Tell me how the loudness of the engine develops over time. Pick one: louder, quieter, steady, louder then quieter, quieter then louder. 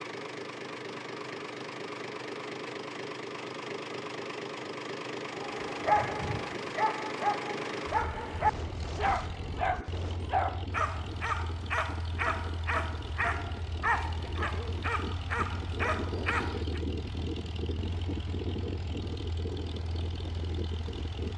quieter.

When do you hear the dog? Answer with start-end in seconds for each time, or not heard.
5.3-16.8.